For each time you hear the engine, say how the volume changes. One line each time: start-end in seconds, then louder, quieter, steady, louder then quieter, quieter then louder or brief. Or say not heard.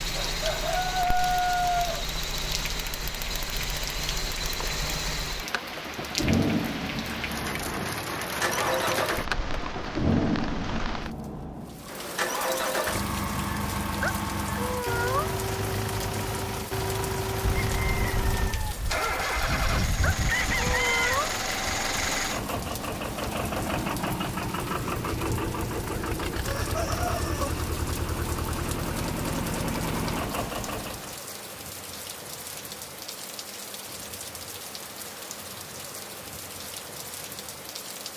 0.0-31.2 steady.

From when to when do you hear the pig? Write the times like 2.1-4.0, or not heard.
not heard.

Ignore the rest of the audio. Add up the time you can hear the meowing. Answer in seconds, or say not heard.
3 s.